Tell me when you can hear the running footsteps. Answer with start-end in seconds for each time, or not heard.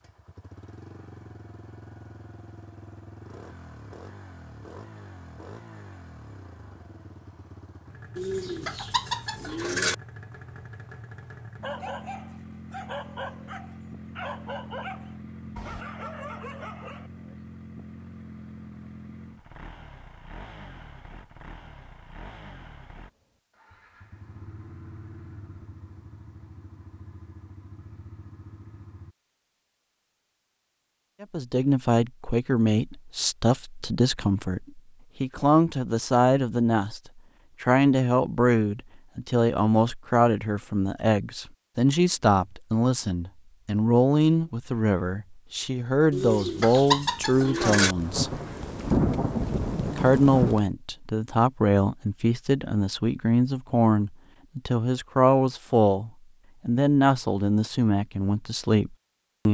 not heard.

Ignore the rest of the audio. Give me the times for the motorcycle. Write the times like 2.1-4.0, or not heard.
0.0-29.1.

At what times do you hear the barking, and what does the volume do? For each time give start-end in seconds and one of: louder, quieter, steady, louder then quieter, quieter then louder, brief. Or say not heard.
11.6-17.1 steady.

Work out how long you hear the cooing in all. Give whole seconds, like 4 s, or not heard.
4 s.